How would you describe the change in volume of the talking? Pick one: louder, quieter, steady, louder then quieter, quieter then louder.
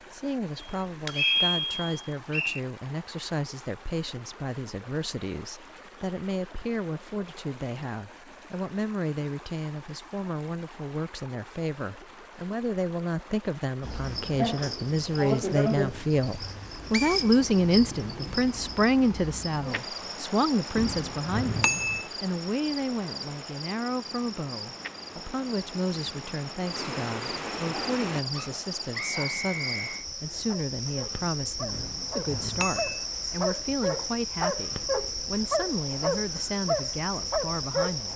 louder then quieter.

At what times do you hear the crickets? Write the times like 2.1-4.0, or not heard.
13.8-38.1.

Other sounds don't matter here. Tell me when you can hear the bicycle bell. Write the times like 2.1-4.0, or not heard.
0.6-2.1, 20.8-22.1, 31.7-33.0.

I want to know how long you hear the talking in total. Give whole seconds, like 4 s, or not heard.
38 s.